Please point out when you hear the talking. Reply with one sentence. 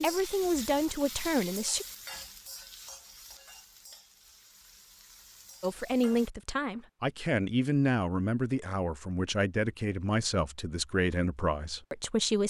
The talking can be heard from 0.0 to 1.9 s and from 5.6 to 12.4 s.